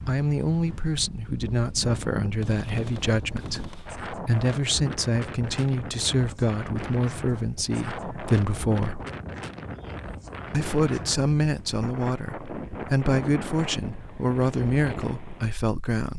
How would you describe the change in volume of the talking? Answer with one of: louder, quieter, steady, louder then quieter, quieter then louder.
steady.